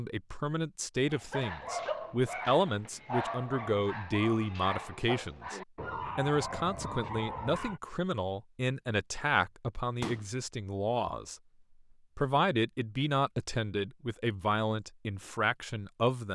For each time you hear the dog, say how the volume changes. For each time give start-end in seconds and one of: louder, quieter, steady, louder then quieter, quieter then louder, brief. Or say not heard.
1.1-7.8 steady.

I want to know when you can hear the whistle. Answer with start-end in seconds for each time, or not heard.
not heard.